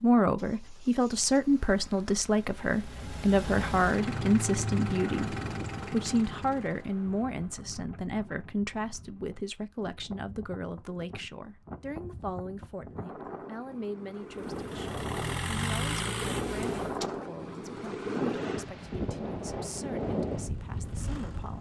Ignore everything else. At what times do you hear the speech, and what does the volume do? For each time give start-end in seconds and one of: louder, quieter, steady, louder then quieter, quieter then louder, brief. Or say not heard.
0.0-21.5 quieter.